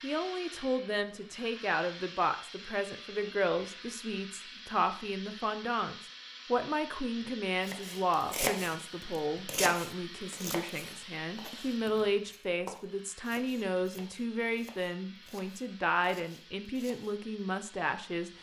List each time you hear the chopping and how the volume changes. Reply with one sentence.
You can hear the chopping from 7.7 to 17.1 s, getting quieter.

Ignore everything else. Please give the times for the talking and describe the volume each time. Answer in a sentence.
You can hear the talking from 0.0 to 18.3 s, at a steady volume.